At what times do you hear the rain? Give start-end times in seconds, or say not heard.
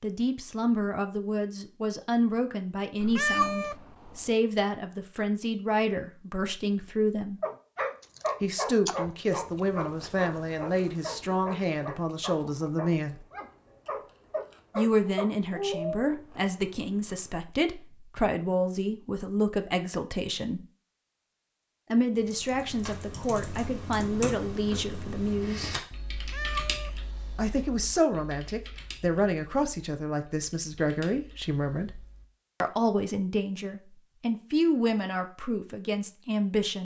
not heard.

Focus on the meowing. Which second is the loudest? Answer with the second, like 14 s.
3 s.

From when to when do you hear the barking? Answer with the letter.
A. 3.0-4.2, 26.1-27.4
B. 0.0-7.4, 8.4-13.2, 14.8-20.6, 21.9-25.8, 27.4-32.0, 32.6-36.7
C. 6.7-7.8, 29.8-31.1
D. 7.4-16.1
D.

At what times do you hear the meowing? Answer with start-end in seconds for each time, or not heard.
3.0-4.2, 26.1-27.4.